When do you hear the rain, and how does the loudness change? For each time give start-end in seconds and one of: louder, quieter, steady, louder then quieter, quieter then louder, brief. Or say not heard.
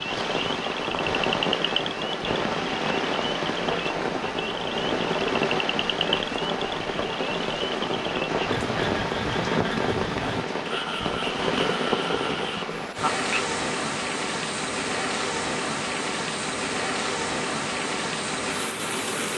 0.0-19.3 steady.